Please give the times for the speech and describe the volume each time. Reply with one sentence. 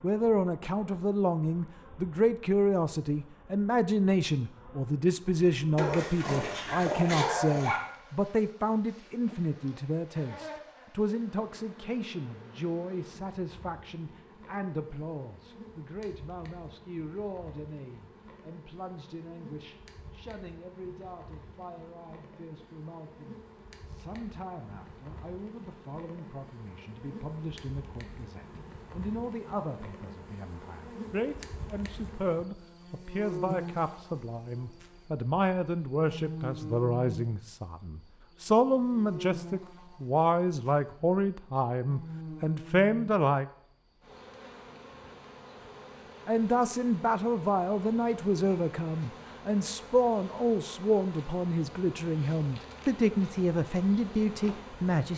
You can hear the speech from 0.0 to 43.5 s, getting quieter then louder; and from 46.2 to 55.1 s, at a steady volume.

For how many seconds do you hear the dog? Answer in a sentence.
You can hear the dog for 2 seconds altogether.